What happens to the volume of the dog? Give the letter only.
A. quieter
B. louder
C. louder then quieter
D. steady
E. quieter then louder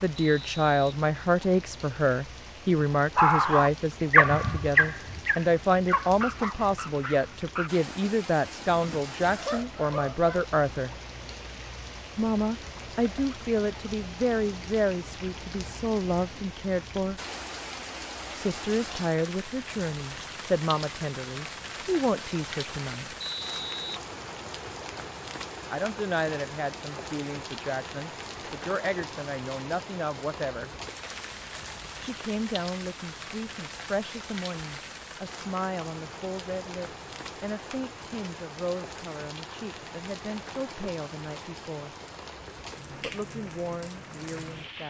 A.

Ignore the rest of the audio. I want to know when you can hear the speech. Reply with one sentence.
The speech can be heard from 0.0 to 10.9 s, from 12.2 to 17.2 s, from 18.4 to 23.1 s, from 25.7 to 30.7 s, from 32.0 to 42.0 s and from 42.9 to 44.8 s.